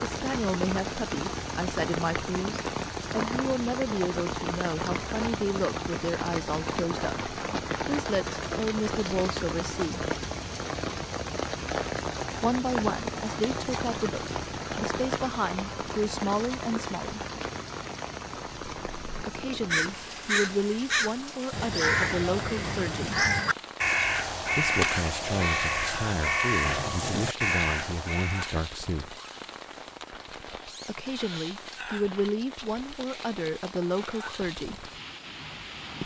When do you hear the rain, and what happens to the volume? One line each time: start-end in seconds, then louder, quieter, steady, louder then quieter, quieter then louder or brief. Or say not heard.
0.0-36.0 quieter.